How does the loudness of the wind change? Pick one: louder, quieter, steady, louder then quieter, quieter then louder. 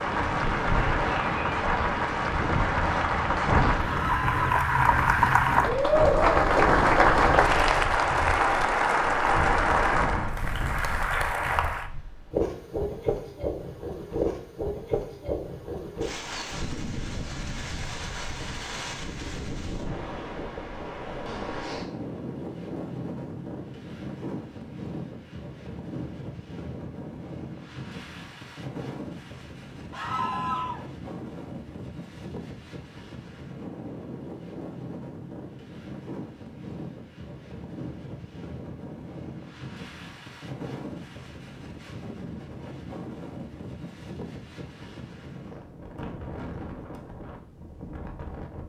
quieter.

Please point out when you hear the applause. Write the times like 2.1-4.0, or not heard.
0.0-11.9.